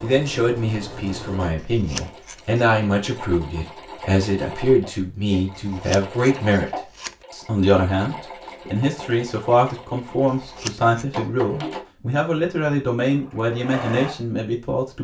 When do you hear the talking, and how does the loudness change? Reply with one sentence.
The talking can be heard from 0.0 to 14.9 s, at a steady volume.